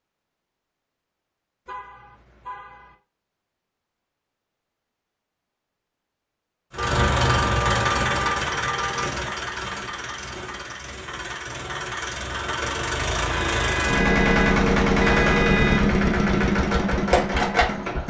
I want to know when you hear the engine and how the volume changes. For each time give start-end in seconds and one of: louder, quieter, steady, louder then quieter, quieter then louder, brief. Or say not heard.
6.7-18.0 quieter then louder.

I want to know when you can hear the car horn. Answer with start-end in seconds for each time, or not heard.
1.6-3.0, 6.8-9.1, 13.5-15.8.